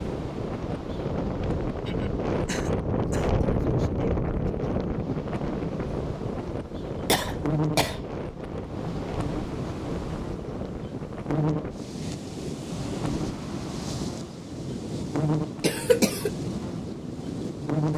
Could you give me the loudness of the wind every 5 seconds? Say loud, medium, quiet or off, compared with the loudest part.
loud, medium, medium, medium.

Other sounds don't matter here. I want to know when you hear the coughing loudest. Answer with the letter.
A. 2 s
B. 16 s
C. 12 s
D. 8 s
B.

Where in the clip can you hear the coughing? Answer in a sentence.
The coughing can be heard from 1.4 to 3.3 s, from 7.0 to 8.0 s and from 15.6 to 16.3 s.